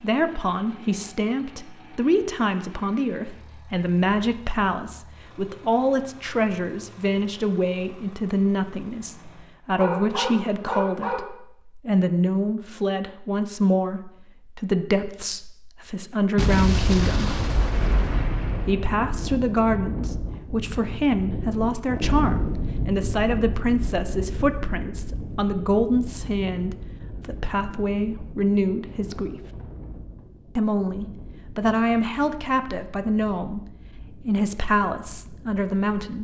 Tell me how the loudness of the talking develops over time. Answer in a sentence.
The loudness of the talking stays about the same.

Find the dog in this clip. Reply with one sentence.
The dog can be heard from 9.8 to 11.2 s.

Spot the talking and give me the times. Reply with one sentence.
You can hear the talking from 0.0 to 17.4 s, from 18.6 to 29.4 s and from 30.6 to 36.1 s.